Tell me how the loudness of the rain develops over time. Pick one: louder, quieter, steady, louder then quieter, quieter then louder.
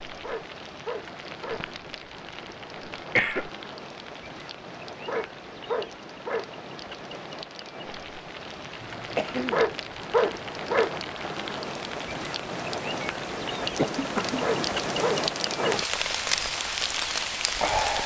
louder.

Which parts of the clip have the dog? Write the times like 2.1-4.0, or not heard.
0.2-1.6, 5.0-6.5, 9.5-10.9, 14.4-15.8.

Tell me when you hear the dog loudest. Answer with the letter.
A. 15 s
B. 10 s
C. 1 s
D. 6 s
B.